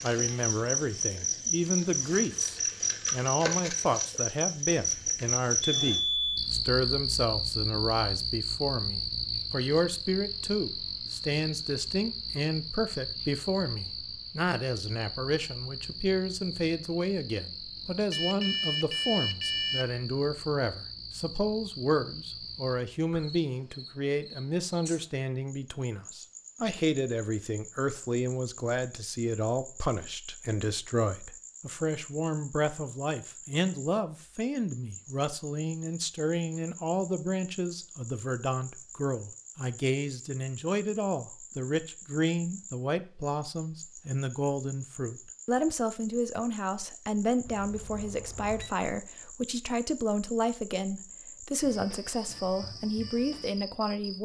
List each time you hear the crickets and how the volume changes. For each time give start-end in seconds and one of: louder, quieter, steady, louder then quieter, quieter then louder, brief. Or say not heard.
0.0-54.1 quieter.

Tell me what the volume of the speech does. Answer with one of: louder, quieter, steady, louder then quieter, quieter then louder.
steady.